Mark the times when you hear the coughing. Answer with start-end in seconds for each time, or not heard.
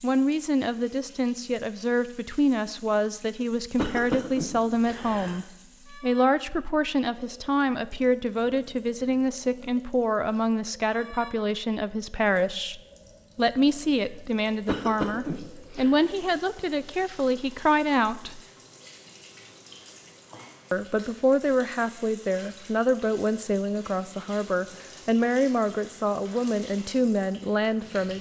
3.8-5.4, 14.7-16.0.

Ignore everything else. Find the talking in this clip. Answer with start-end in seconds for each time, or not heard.
0.0-18.4, 20.7-28.1.